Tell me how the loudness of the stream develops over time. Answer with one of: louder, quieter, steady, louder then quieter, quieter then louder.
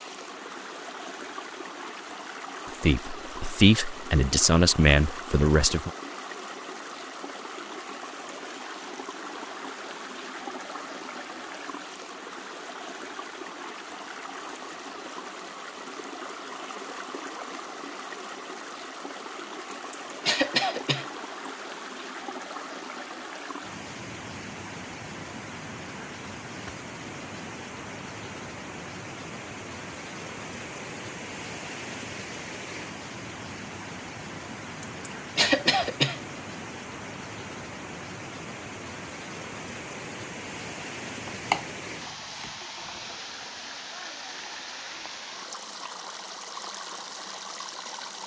steady.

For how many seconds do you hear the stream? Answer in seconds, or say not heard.
48 s.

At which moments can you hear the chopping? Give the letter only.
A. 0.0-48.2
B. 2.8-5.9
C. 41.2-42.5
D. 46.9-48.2
C.